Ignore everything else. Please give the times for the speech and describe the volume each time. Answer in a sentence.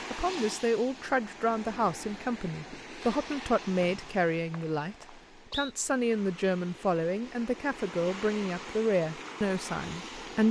You can hear the speech from 0.1 to 10.4 s, at a steady volume.